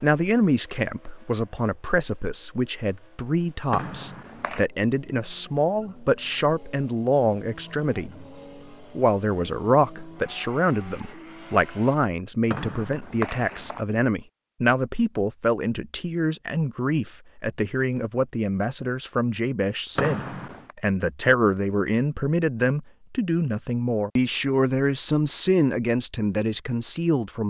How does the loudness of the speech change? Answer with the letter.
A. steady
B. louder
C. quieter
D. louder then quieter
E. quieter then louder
A.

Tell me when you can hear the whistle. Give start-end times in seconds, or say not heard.
3.7-4.7, 12.4-13.8, 19.9-20.8.